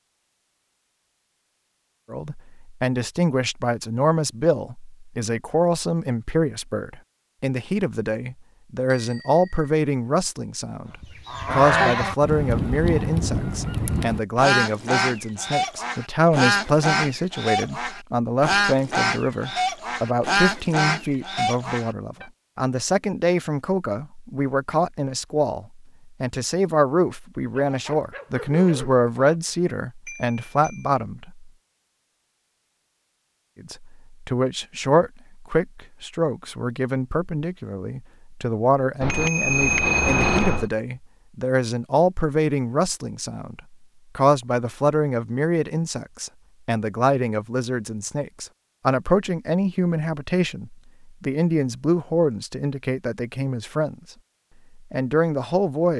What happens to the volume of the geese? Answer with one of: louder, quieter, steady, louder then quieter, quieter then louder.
steady.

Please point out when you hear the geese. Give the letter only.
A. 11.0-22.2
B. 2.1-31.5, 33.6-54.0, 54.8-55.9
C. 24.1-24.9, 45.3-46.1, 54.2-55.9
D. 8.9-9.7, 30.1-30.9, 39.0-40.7
A.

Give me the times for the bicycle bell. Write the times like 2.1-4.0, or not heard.
8.9-9.7, 30.1-30.9, 39.0-40.7.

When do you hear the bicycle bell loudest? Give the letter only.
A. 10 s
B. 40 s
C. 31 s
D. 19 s
B.